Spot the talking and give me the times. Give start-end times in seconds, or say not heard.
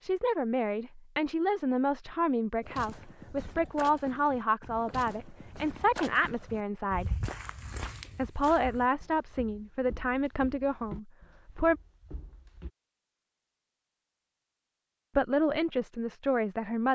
0.0-7.2, 8.2-11.8, 15.2-16.8.